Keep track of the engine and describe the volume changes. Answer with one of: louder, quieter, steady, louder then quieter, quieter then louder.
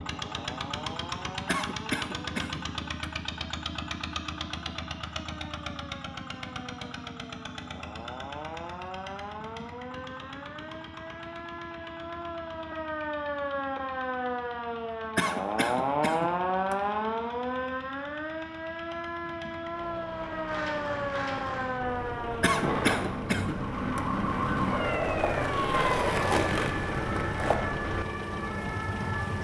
quieter then louder.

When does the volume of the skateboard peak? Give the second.
26 s.